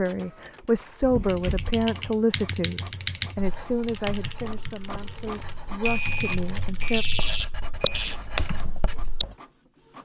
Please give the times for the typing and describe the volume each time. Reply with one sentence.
You can hear the typing from 1.2 to 9.3 s, getting quieter then louder.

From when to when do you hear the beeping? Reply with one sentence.
The beeping can be heard from 1.0 to 1.7 s and from 5.8 to 8.2 s.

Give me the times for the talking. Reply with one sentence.
The talking can be heard from 0.0 to 7.0 s.